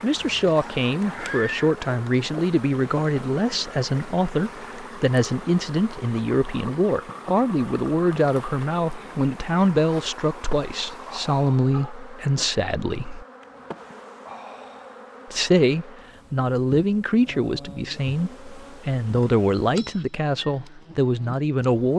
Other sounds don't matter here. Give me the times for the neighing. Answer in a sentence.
The neighing can be heard from 1.1 to 1.7 s.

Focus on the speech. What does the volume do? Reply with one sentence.
The loudness of the speech stays about the same.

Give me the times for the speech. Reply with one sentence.
You can hear the speech from 0.0 to 13.2 s and from 15.3 to 21.9 s.